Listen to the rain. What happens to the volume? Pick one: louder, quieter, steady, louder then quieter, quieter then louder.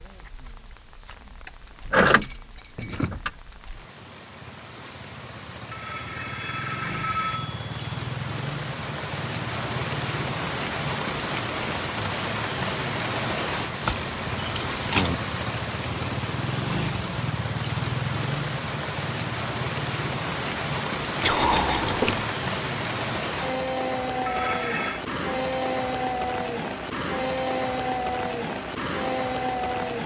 louder.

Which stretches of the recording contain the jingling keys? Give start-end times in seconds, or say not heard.
1.4-3.3, 13.8-15.2, 21.2-22.2.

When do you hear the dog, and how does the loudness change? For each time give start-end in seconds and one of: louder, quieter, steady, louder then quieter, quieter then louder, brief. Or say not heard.
not heard.